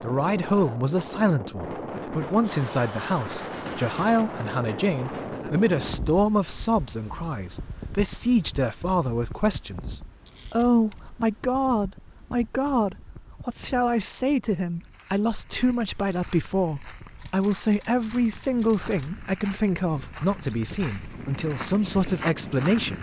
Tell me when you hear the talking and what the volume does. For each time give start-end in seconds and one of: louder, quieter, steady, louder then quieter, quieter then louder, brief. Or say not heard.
0.0-22.9 steady.